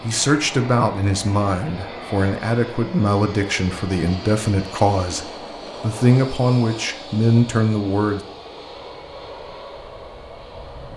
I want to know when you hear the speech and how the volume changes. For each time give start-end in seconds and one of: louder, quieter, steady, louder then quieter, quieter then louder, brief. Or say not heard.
0.0-8.2 steady.